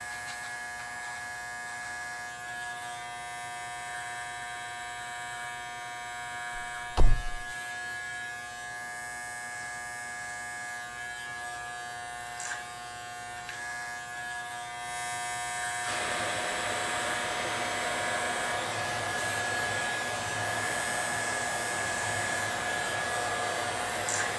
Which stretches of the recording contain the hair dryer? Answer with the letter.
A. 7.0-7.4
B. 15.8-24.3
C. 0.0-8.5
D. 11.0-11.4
B.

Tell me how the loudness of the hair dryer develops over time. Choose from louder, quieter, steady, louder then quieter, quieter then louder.
steady.